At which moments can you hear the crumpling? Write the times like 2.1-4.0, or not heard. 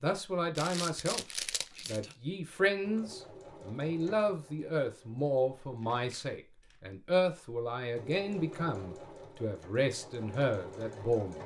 0.6-2.1, 5.8-6.8.